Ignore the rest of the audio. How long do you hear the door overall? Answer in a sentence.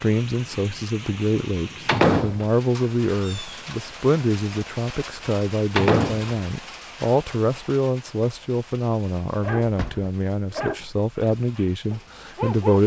You can hear the door for 2 seconds altogether.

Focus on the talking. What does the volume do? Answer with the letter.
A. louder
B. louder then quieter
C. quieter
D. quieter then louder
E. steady
E.